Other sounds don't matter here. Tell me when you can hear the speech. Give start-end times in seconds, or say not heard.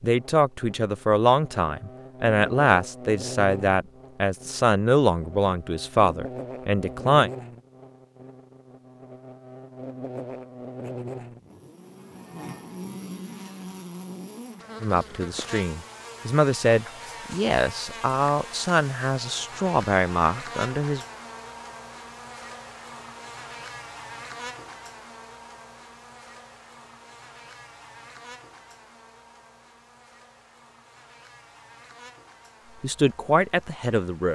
0.0-7.3, 14.8-21.0, 32.8-34.3.